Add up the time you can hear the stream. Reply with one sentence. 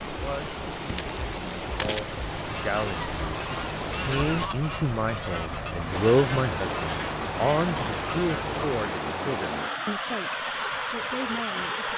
You can hear the stream for 12 seconds altogether.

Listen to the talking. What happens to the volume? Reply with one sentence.
The volume of the talking goes up, then down.